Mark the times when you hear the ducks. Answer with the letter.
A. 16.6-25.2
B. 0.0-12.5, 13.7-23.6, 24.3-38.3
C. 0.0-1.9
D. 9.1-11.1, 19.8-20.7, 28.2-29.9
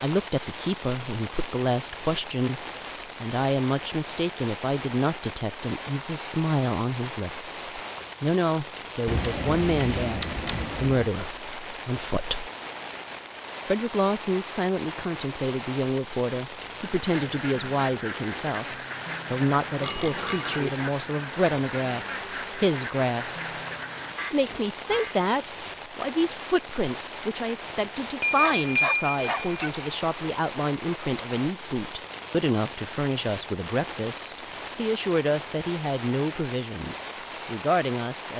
A.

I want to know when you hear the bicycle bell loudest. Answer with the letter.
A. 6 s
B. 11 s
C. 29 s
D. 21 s
C.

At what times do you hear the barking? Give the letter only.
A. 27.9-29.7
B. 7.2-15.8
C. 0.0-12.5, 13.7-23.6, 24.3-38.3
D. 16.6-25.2
A.